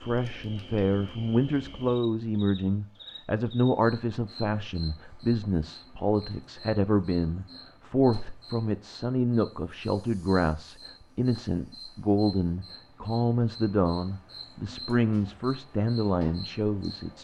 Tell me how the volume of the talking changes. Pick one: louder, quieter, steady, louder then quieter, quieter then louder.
steady.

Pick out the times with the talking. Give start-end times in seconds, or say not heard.
0.0-17.1.